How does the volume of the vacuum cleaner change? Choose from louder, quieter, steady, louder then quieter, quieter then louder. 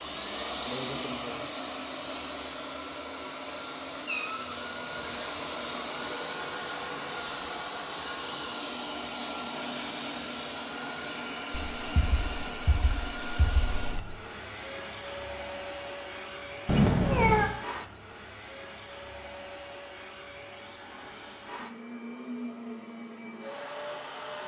quieter.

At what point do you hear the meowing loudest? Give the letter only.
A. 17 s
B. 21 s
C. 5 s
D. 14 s
A.